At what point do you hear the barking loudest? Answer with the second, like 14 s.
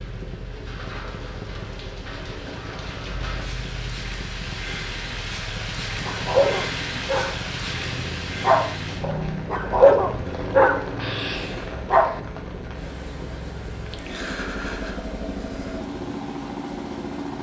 10 s.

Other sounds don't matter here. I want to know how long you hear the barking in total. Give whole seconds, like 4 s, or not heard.
6 s.